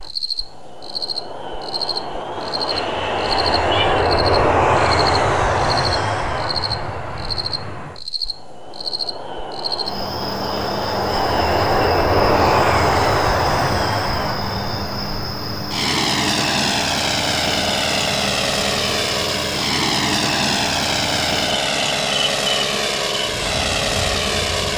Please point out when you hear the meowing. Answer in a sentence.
The meowing can be heard from 2.7 to 4.0 s.